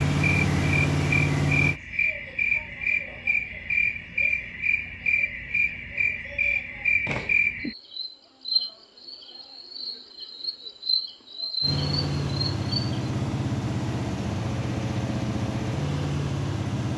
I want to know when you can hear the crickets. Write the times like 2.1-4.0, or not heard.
0.0-13.1.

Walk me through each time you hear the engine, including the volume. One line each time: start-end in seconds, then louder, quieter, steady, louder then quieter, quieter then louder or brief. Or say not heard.
0.0-1.8 brief
11.6-16.9 steady.